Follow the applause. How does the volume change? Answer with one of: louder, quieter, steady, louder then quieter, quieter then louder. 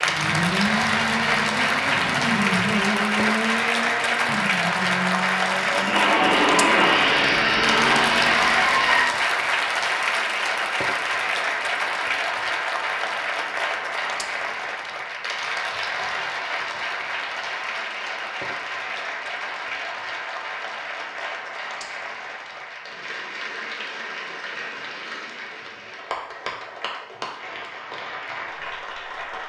quieter.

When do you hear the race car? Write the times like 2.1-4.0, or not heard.
0.0-9.1.